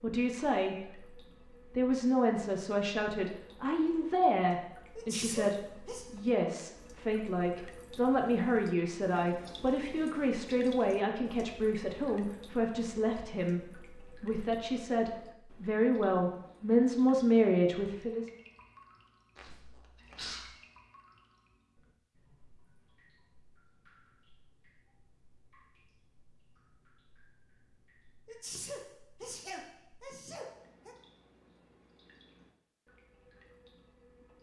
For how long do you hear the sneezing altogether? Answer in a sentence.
The sneezing can be heard for 5 seconds in total.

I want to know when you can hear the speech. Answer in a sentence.
You can hear the speech from 0.0 to 1.0 s and from 1.8 to 18.3 s.